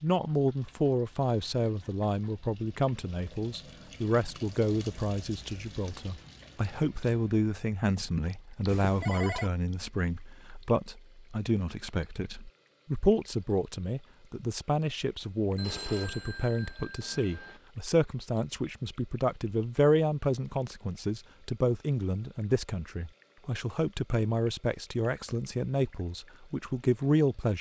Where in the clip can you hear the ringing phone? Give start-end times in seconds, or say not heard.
8.7-9.5, 15.6-17.6.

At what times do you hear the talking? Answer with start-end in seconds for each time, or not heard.
0.0-27.5.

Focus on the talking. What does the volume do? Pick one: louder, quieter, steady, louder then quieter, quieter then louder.
steady.